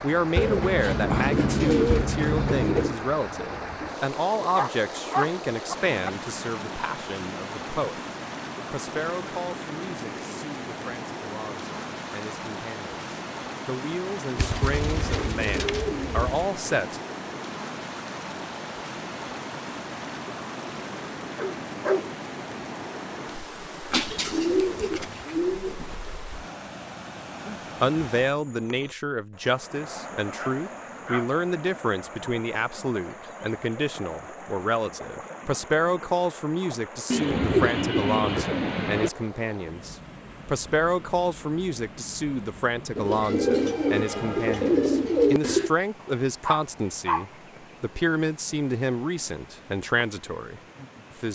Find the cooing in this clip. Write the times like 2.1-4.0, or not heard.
0.3-3.0, 14.3-16.5, 23.9-25.9, 37.1-39.1, 43.0-45.7.